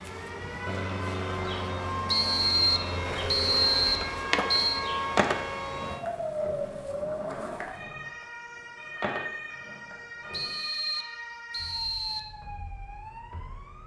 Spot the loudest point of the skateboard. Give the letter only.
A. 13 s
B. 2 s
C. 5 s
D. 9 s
C.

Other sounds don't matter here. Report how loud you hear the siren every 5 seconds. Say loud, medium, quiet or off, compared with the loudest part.
loud, loud, medium.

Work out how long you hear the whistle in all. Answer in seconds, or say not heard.
5 s.